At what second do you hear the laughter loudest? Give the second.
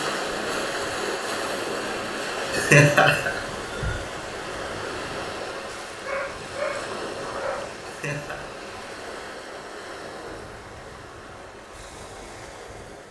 3 s.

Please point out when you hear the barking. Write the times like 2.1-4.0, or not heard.
5.7-7.7.